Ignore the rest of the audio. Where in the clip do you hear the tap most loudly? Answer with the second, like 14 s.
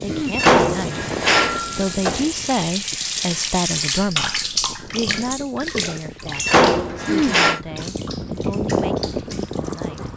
4 s.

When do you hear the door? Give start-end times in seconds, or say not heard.
0.2-2.3, 6.3-7.6.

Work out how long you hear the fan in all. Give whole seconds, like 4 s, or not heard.
10 s.